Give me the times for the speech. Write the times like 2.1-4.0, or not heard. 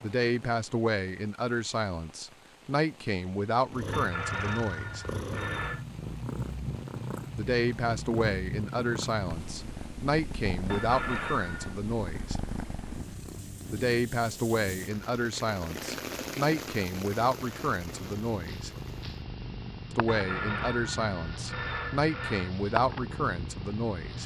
0.0-5.0, 7.3-12.3, 13.7-18.7, 19.9-24.2.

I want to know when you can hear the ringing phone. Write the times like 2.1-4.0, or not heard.
3.9-5.8, 10.7-11.8, 20.1-22.6.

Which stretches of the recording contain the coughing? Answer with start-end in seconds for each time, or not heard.
not heard.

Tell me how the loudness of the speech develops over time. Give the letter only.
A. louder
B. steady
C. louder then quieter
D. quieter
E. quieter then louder
B.